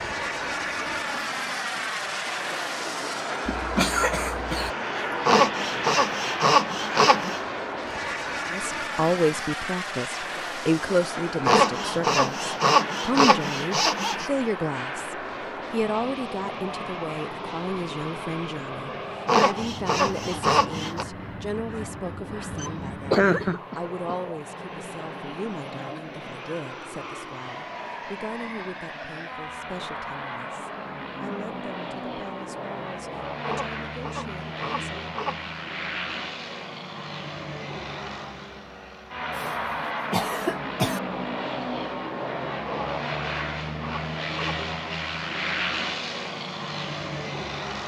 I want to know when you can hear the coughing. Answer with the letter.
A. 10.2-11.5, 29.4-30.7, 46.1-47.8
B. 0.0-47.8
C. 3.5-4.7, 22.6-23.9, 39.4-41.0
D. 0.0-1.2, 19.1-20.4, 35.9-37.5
C.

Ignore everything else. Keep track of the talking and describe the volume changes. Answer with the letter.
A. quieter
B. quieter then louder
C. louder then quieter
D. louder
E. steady
A.